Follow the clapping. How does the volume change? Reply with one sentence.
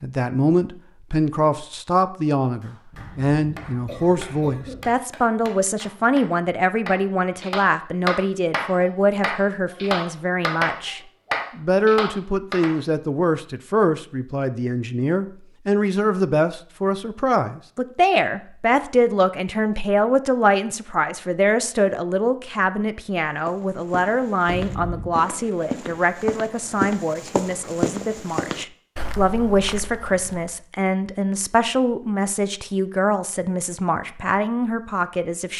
The loudness of the clapping goes up.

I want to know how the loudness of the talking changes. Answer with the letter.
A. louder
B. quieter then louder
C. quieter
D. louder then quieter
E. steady
E.